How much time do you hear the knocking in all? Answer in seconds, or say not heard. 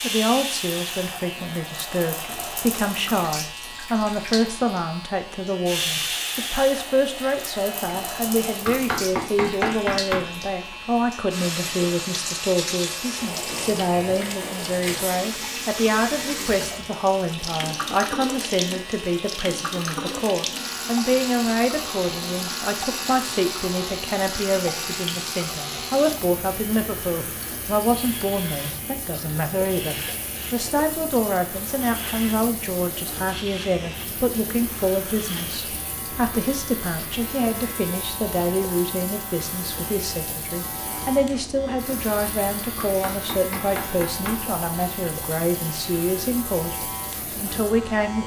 3 s.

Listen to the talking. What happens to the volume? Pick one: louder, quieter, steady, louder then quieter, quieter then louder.
steady.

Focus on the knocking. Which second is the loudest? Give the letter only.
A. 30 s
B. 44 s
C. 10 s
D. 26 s
C.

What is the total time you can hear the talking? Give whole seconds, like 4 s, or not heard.
48 s.